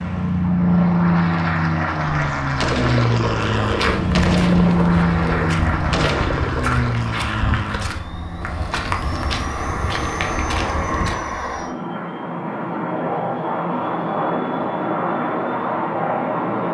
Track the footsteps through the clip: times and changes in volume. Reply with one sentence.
You can hear the footsteps from 3.4 to 11.2 s, at a steady volume.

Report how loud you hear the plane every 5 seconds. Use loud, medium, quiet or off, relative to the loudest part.
loud, medium, medium, loud.